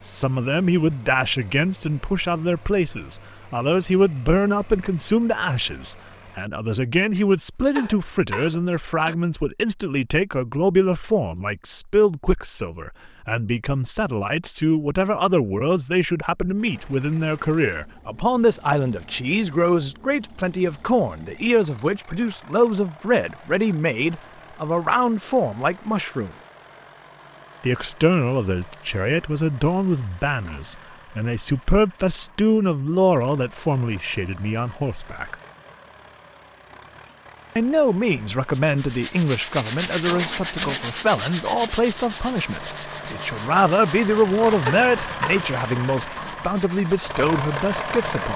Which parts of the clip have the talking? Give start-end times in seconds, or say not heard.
0.0-26.3, 27.6-35.4, 37.5-48.3.